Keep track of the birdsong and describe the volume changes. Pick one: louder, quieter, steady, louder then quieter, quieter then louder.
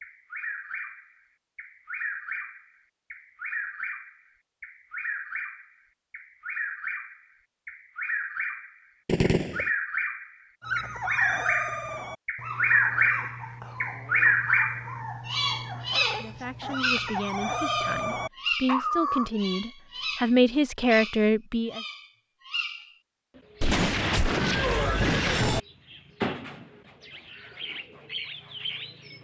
louder then quieter.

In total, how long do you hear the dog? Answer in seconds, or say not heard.
9 s.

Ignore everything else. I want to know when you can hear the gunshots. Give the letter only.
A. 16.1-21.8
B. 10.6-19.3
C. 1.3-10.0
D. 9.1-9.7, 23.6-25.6
D.